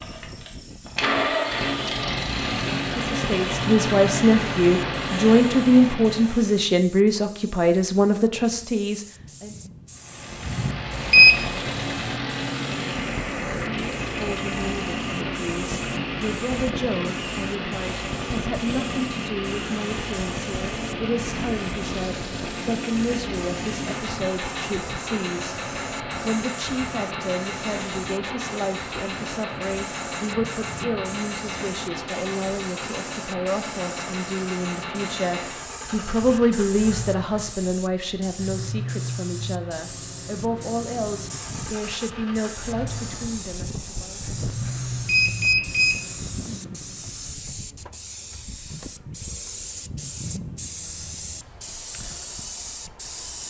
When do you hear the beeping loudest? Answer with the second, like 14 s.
11 s.